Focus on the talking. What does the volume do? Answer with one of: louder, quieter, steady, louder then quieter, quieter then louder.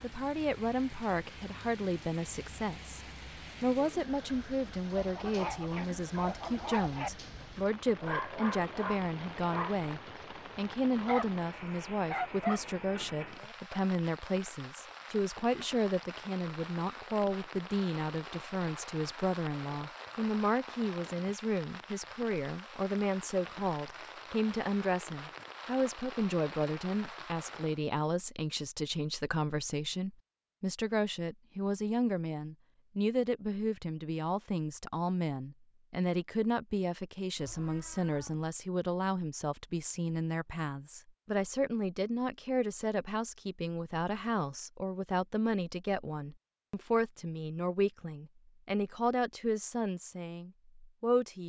steady.